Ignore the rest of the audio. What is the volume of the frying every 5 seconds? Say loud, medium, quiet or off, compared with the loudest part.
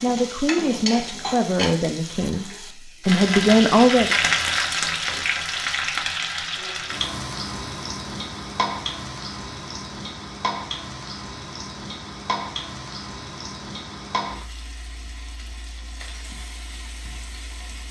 loud, loud, medium, quiet.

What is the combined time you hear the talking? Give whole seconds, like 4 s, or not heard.
4 s.